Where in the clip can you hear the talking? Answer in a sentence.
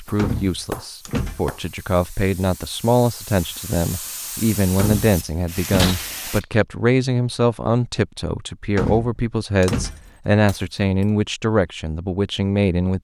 You can hear the talking from 0.0 to 12.9 s.